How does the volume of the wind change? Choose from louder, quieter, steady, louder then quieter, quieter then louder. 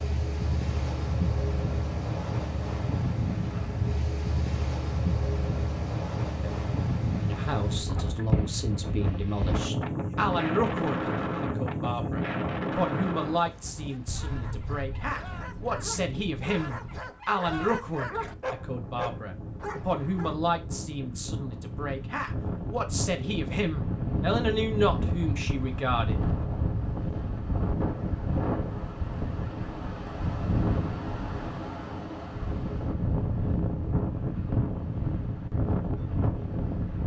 quieter then louder.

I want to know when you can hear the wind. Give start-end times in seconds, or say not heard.
0.0-37.0.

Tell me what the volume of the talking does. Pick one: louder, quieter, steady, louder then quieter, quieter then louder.
steady.